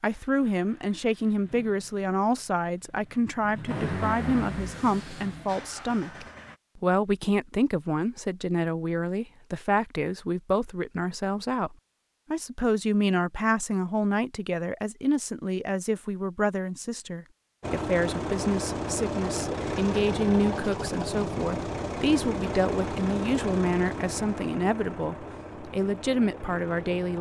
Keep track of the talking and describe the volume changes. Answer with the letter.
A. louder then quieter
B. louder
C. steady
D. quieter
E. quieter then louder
C.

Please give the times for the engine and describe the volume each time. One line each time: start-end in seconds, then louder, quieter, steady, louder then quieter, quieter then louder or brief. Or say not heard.
0.0-6.5 louder then quieter
17.6-27.1 quieter.